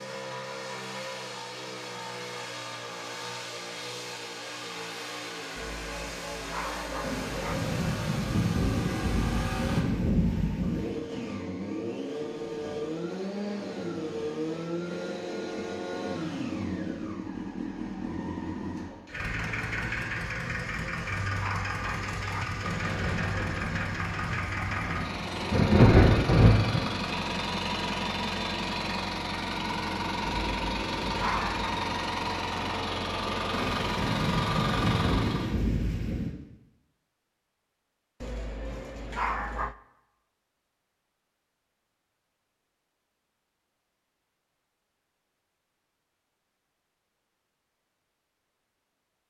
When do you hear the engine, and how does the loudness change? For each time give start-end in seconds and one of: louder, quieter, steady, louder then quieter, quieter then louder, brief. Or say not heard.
0.0-35.5 louder.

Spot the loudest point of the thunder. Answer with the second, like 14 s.
26 s.